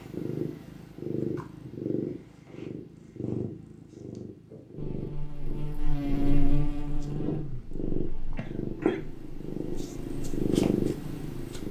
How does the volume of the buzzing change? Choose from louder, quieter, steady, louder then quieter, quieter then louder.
quieter then louder.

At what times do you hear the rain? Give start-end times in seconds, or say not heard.
not heard.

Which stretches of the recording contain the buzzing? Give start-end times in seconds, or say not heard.
4.8-11.4.